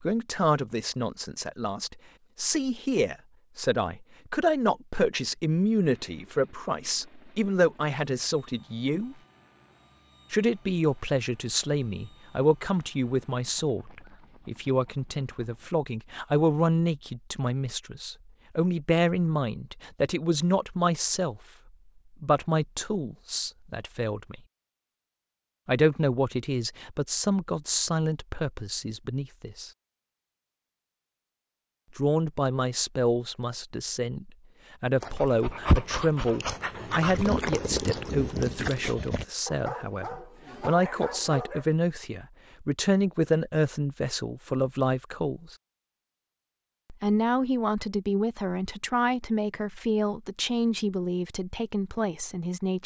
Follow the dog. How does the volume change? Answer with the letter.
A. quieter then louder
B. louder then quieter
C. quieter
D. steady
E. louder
C.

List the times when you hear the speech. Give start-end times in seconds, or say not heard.
0.0-9.2, 10.3-21.4, 22.2-24.4, 25.6-29.7, 31.9-45.5, 46.9-52.8.